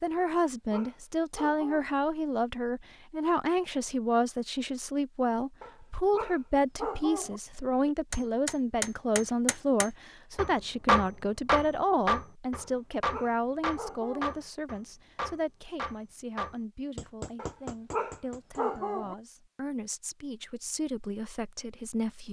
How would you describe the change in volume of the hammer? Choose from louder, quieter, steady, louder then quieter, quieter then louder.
louder then quieter.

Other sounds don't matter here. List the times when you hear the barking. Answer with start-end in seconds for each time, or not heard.
0.1-1.9, 5.6-7.4, 12.6-14.3, 17.4-19.1.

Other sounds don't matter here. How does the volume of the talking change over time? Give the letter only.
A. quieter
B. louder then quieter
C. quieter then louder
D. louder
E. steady
A.